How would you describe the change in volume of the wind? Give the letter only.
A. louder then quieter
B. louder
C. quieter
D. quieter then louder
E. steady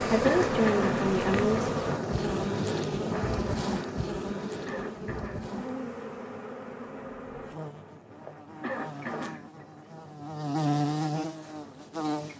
C.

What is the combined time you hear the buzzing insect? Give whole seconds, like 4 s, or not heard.
12 s.